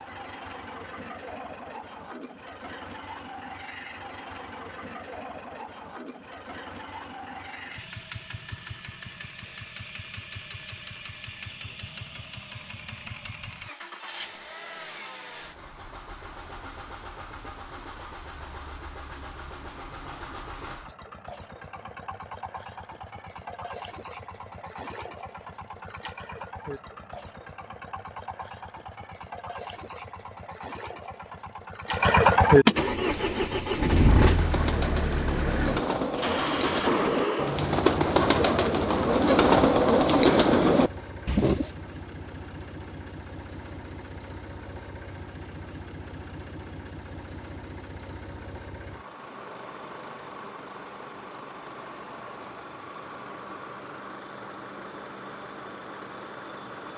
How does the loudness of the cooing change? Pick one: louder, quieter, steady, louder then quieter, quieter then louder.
louder.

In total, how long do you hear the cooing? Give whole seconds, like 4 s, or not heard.
9 s.